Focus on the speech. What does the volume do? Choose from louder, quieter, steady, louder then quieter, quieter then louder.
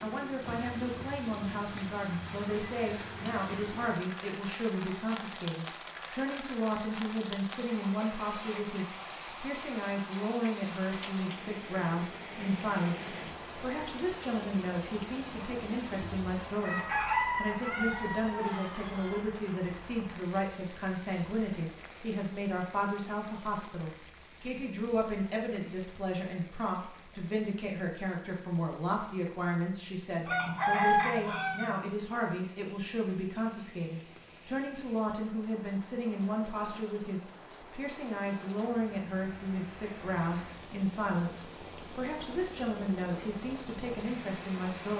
steady.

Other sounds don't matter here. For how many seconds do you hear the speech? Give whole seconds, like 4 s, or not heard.
45 s.